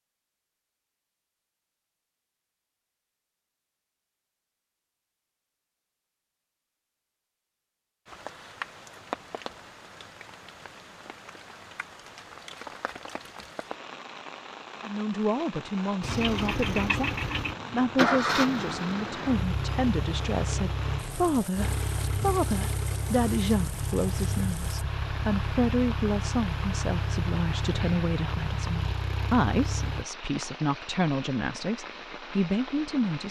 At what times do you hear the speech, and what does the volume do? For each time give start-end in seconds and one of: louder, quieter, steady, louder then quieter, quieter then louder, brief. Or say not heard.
14.8-33.2 steady.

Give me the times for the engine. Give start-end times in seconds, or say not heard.
16.0-30.1.